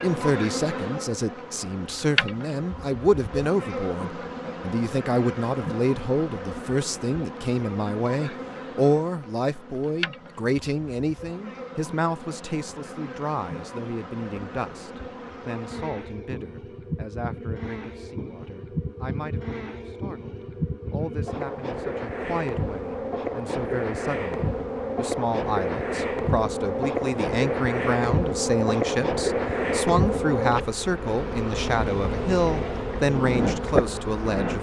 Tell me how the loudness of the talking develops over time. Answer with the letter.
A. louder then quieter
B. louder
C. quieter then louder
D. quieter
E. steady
C.